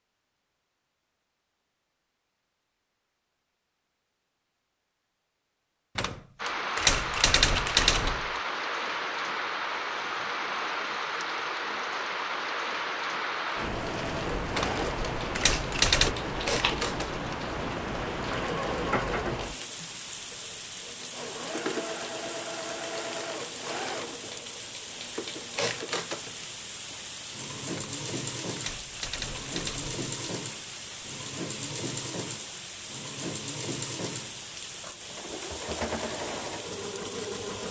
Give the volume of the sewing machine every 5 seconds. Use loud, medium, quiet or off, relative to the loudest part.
off, off, loud, loud, loud, loud, loud, loud.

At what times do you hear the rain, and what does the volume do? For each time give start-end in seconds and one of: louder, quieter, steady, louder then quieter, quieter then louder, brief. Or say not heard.
6.3-37.6 quieter.